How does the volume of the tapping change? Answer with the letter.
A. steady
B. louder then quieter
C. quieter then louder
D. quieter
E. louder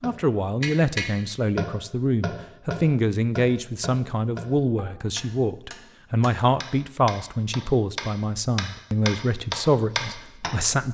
C.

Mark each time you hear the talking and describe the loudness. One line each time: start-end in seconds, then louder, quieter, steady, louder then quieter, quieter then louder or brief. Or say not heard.
0.0-10.8 steady.